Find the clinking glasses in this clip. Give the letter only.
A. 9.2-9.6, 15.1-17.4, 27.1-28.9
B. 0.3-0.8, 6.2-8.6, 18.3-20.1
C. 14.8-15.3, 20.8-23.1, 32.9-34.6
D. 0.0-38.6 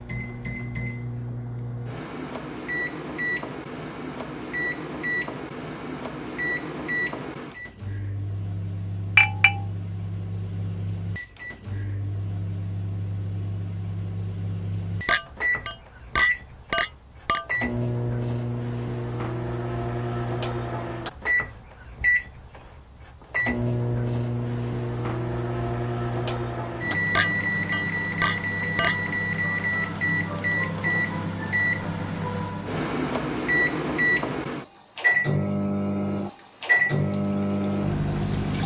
A.